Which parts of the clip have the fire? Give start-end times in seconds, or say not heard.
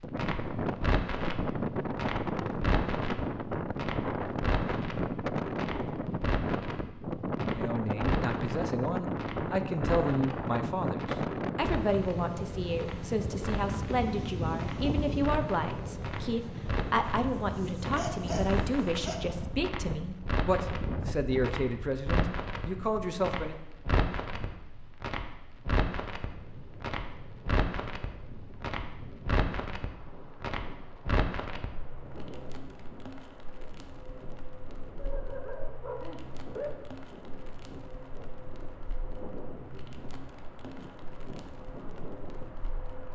0.0-43.1.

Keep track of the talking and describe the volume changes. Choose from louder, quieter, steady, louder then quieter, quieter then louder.
steady.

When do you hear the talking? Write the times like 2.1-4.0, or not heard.
7.5-23.6.